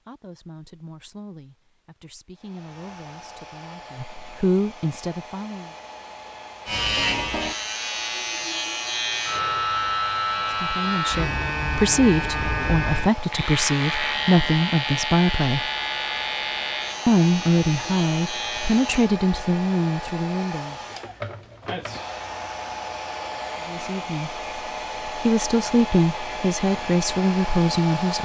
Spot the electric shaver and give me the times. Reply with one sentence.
The electric shaver can be heard from 6.7 to 19.1 s.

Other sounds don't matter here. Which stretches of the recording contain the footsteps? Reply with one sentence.
The footsteps can't be heard in this clip.